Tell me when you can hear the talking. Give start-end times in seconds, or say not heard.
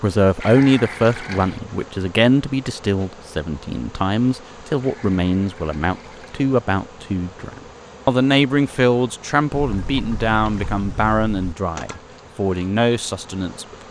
0.0-13.7.